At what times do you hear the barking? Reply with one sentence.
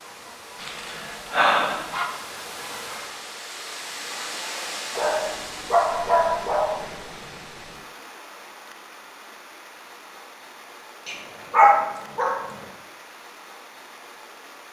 The barking can be heard from 0.6 to 2.0 s, from 5.0 to 6.8 s and from 11.1 to 12.3 s.